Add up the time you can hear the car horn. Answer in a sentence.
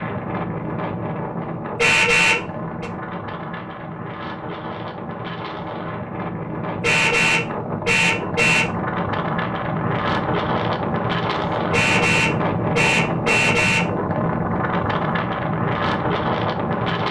The car horn can be heard for 5 seconds in total.